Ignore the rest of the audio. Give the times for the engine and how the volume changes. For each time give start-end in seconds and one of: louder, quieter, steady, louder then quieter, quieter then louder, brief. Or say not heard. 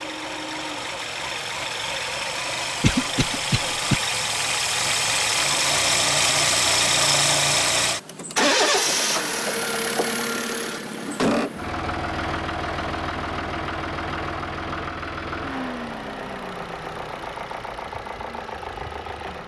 0.0-19.4 louder then quieter.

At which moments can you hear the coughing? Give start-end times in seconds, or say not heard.
2.8-4.0.